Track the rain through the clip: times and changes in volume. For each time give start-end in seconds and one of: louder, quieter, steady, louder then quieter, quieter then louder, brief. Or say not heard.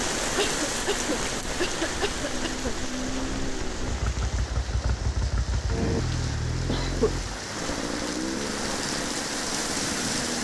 0.0-10.3 quieter then louder.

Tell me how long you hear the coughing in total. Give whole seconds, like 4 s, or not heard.
3 s.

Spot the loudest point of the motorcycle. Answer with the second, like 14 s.
6 s.